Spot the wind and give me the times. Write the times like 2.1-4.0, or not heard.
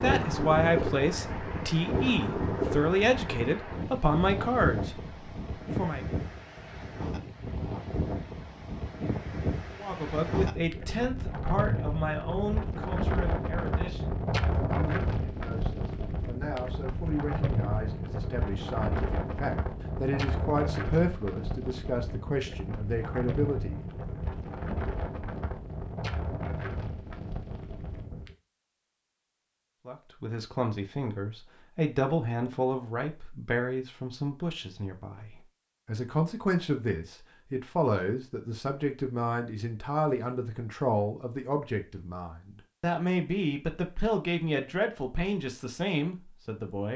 0.0-28.4.